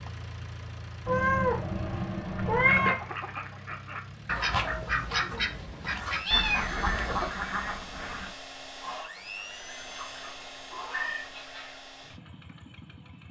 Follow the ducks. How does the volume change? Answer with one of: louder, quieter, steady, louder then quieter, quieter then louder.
quieter.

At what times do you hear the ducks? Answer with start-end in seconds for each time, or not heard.
2.5-11.8.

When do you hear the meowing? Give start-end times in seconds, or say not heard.
1.1-3.0, 6.2-7.3, 9.8-11.3.